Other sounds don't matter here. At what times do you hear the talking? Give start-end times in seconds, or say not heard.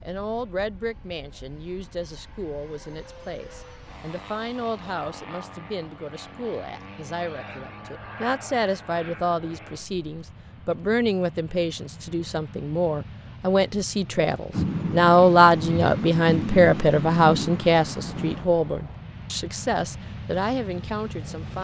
0.0-21.5.